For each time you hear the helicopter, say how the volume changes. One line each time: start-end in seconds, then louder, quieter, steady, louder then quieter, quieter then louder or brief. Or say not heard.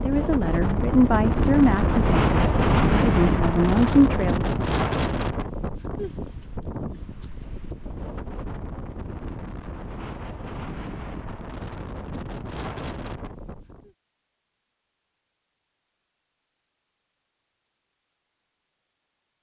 not heard.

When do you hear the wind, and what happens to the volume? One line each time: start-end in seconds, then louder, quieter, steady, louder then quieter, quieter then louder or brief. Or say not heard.
0.0-13.9 quieter.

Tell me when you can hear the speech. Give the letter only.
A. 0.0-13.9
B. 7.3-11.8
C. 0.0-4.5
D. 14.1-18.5
C.